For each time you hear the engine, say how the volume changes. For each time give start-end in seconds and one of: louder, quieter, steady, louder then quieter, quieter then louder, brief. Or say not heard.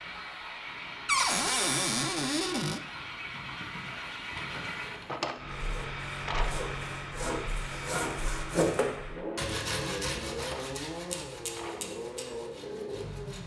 0.0-13.4 steady.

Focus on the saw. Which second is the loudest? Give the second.
9 s.